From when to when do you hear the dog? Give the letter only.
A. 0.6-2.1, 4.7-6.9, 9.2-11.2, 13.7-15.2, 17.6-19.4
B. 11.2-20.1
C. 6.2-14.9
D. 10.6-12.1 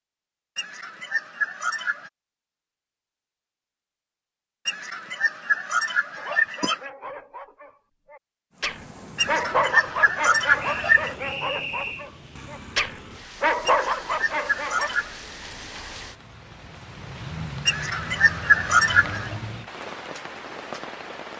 C.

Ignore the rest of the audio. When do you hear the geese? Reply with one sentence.
You can hear the geese from 0.6 to 2.1 s, from 4.7 to 6.9 s, from 9.2 to 11.2 s, from 13.7 to 15.2 s and from 17.6 to 19.4 s.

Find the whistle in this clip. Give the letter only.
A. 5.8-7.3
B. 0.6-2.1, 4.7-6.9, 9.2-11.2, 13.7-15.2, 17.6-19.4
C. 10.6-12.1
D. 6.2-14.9
C.